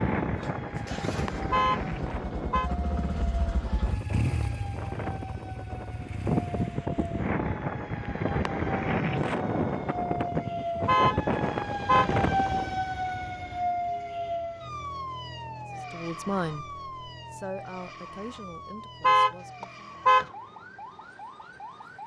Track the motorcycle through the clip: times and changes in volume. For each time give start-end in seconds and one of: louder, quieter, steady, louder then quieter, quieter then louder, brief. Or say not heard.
0.2-6.8 louder then quieter.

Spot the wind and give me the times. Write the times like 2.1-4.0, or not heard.
0.0-12.8.